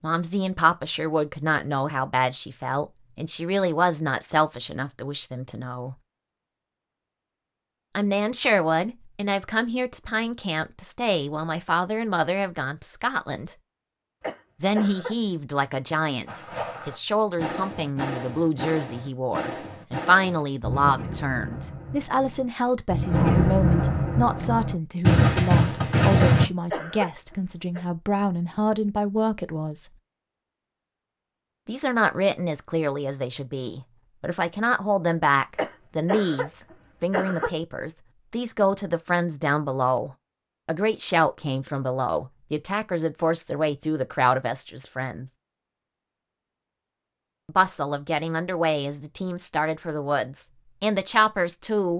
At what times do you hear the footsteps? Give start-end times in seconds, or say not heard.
not heard.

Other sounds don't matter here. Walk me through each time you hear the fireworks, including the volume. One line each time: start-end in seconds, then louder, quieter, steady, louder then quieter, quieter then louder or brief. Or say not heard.
16.2-26.4 louder.